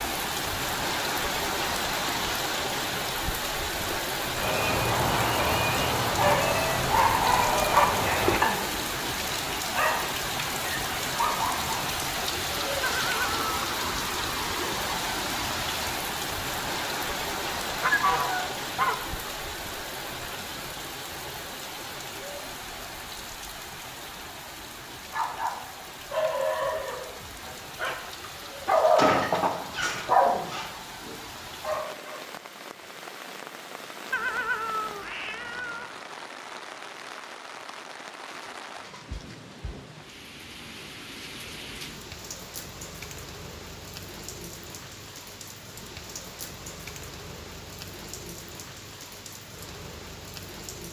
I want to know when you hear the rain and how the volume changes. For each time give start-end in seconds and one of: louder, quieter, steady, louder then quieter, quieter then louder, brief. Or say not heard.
0.0-50.8 quieter.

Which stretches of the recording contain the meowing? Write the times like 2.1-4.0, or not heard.
12.8-13.5, 34.1-35.9.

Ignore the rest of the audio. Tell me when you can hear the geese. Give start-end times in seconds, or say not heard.
17.6-19.3.